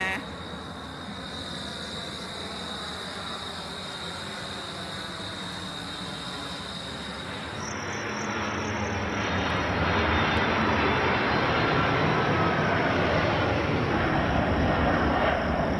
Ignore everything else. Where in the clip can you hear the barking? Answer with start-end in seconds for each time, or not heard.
not heard.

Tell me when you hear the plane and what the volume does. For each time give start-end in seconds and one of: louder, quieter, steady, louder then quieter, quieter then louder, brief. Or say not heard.
0.0-15.7 louder.